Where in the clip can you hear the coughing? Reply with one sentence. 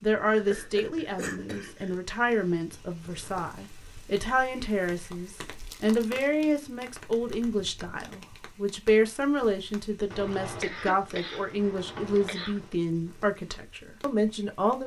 You can hear the coughing from 0.3 to 1.9 s and from 10.1 to 12.8 s.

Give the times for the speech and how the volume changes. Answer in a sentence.
You can hear the speech from 0.0 to 14.8 s, at a steady volume.